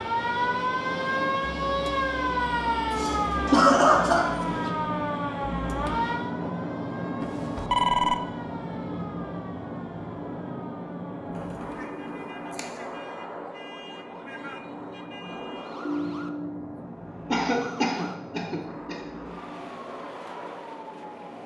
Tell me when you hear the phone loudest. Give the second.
8 s.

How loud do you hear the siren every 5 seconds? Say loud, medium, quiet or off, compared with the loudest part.
loud, medium, quiet, quiet, quiet.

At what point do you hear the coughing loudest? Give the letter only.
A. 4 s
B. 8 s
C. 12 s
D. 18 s
A.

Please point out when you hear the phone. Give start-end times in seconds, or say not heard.
2.4-3.0, 7.2-8.2, 15.8-16.8.